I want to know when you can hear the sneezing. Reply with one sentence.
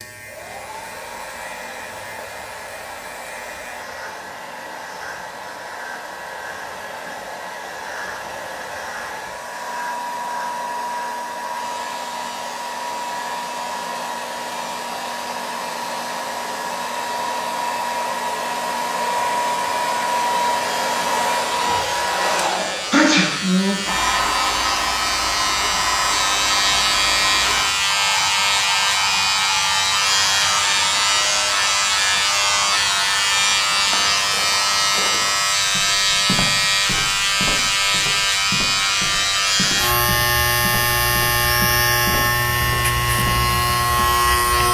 The sneezing can be heard from 22.4 to 23.4 s.